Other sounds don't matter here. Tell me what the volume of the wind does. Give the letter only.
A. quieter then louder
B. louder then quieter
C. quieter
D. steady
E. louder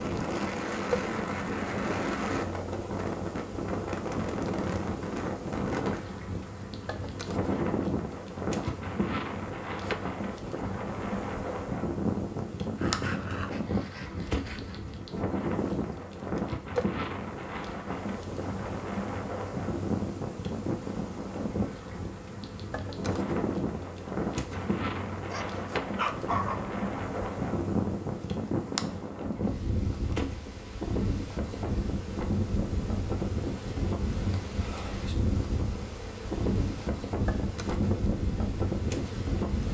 D.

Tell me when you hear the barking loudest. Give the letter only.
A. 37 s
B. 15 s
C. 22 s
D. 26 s
D.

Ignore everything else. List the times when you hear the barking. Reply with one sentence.
You can hear the barking from 12.8 to 14.8 s and from 25.1 to 26.6 s.